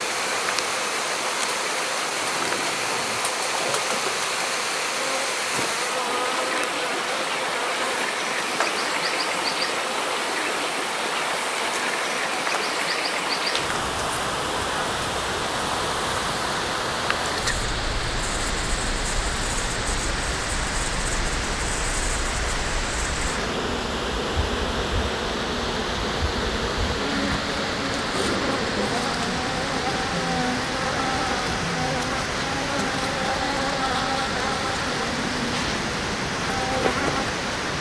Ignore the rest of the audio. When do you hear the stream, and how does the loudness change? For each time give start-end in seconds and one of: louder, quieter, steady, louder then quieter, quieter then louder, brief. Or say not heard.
0.0-37.7 steady.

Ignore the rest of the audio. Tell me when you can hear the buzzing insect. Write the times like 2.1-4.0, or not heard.
0.0-37.7.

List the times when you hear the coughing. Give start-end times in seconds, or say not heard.
2.4-4.2, 28.1-28.9.